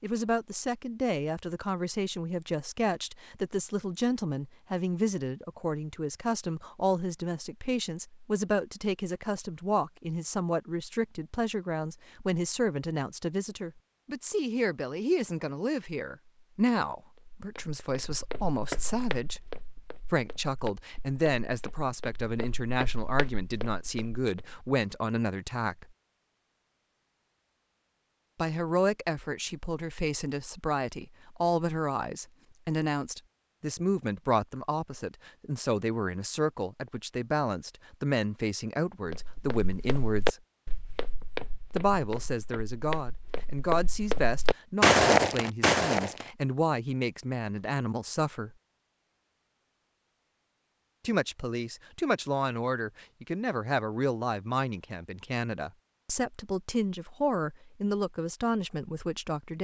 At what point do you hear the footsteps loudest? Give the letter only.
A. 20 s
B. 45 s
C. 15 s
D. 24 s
B.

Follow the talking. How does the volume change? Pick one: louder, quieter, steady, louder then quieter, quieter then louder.
steady.